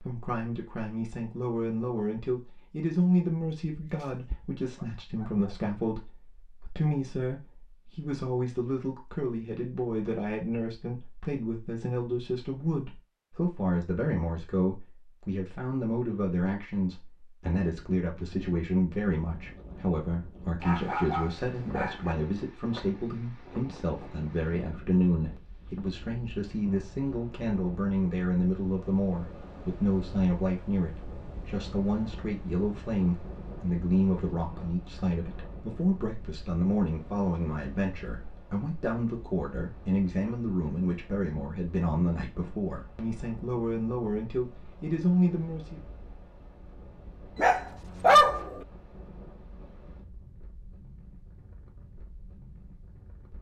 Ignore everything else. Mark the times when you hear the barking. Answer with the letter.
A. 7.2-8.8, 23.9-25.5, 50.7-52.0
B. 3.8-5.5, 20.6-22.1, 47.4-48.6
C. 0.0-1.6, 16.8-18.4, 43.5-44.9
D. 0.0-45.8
B.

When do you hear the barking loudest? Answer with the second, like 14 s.
48 s.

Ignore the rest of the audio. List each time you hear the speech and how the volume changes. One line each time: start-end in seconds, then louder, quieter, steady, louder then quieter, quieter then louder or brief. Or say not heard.
0.0-45.8 steady.